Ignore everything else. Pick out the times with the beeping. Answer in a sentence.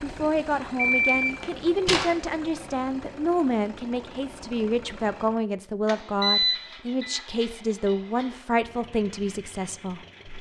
You can hear the beeping from 0.8 to 2.1 s and from 6.2 to 7.2 s.